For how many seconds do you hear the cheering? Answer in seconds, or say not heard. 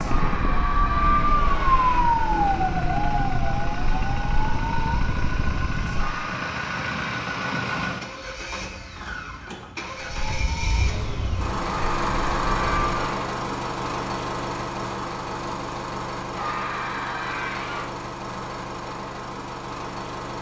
7 s.